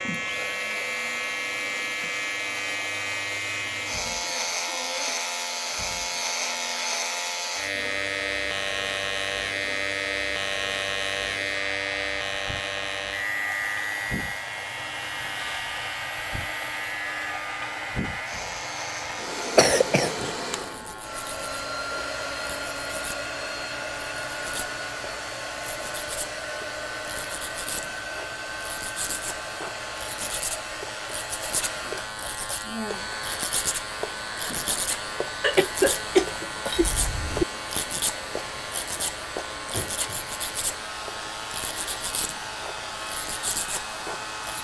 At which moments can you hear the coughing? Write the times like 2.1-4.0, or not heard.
19.6-20.3, 35.4-37.5.